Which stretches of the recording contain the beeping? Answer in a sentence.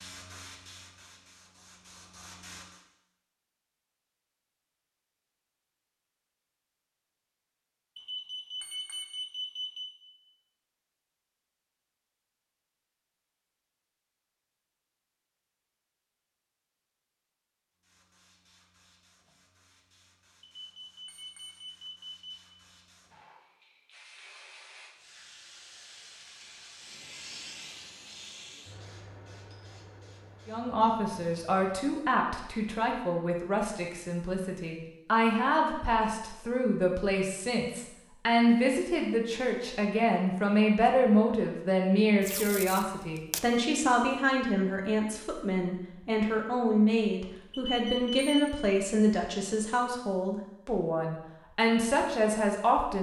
The beeping can be heard from 8.0 to 9.9 s, from 20.6 to 22.2 s and from 47.5 to 48.5 s.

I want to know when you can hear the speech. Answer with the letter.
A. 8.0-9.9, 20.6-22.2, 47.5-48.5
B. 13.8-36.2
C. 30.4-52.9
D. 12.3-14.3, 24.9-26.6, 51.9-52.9
C.